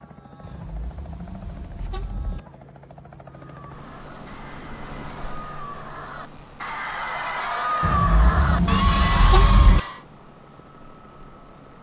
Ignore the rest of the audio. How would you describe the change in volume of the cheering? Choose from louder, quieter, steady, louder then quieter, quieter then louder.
louder.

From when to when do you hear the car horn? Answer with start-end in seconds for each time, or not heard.
0.4-2.4, 7.8-9.8.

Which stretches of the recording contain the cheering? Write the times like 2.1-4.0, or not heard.
3.3-10.0.